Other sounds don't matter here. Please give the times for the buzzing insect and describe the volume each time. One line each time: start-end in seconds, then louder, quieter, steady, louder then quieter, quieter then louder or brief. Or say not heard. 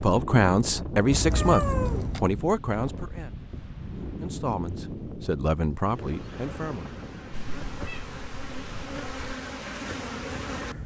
5.8-10.8 louder.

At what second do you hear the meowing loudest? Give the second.
2 s.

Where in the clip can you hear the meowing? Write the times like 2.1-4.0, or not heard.
1.1-2.2, 7.3-9.3.